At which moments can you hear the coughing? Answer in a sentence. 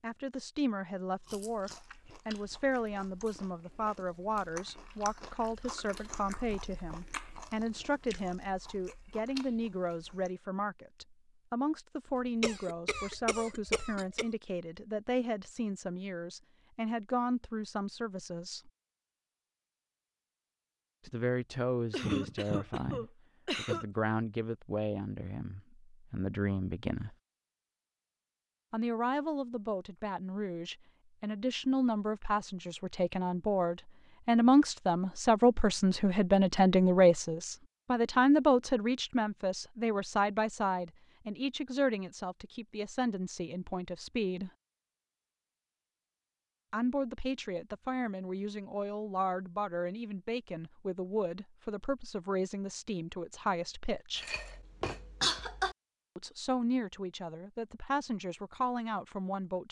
You can hear the coughing from 12.4 to 14.2 s, from 21.9 to 23.9 s and from 54.1 to 55.8 s.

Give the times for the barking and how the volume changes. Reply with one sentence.
You can't hear the barking here.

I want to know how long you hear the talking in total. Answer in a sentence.
You can hear the talking for 52 seconds altogether.